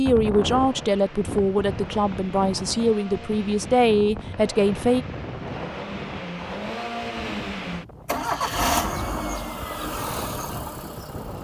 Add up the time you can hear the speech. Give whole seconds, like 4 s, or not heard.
5 s.